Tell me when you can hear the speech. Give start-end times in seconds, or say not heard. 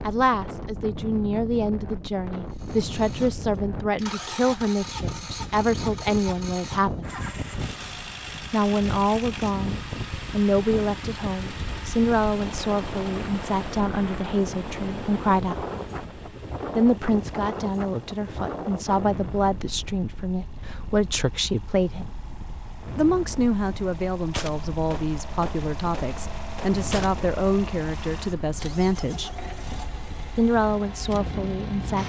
0.1-7.1, 8.5-15.7, 16.8-22.1, 22.9-29.3, 30.4-32.0.